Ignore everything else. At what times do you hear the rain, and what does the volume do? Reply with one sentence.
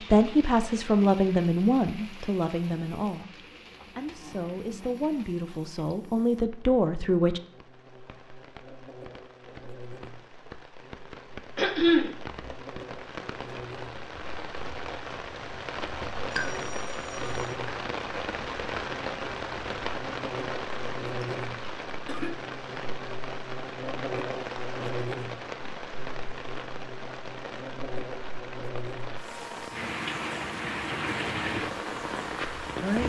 You can hear the rain from 0.0 to 33.0 s, getting louder.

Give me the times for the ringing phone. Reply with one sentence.
The ringing phone can be heard from 16.3 to 17.6 s.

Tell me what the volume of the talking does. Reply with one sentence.
The volume of the talking goes down, then up.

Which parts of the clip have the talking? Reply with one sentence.
You can hear the talking from 0.0 to 7.4 s.